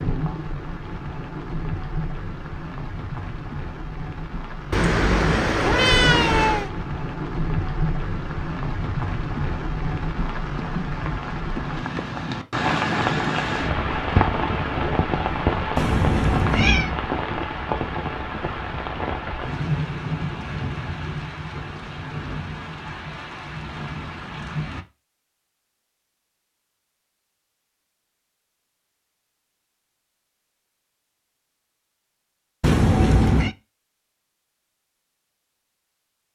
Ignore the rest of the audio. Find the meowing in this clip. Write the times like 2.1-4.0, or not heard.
4.7-6.7, 15.8-16.9, 32.6-33.5.